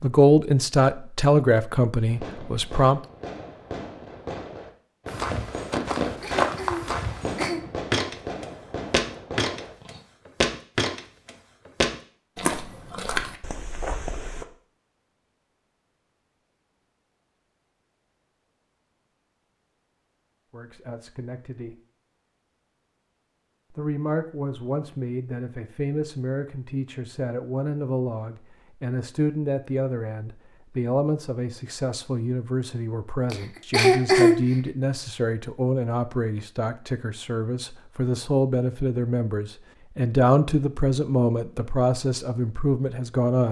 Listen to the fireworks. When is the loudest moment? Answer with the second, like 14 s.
6 s.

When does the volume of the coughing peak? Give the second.
34 s.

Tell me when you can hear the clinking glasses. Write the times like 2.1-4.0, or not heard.
not heard.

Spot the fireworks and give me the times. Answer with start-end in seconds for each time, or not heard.
2.0-10.0.